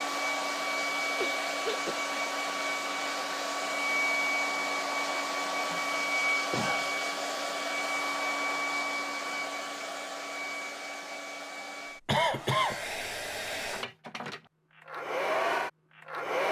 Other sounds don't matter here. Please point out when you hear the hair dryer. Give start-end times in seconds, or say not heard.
0.0-16.4.